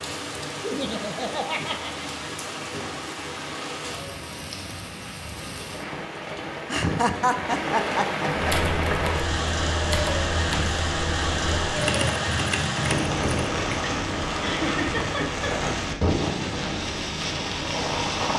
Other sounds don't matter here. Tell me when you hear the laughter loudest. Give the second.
7 s.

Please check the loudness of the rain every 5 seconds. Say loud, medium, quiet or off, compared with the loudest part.
medium, loud, loud, loud.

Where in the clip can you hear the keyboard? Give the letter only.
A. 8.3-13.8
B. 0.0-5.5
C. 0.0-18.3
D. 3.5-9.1
A.